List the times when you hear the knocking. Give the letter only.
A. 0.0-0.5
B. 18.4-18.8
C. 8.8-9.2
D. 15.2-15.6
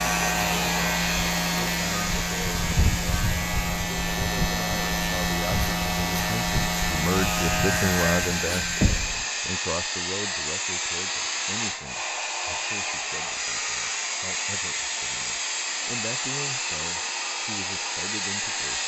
C.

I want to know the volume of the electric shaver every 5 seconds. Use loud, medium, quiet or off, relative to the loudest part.
loud, loud, off, off.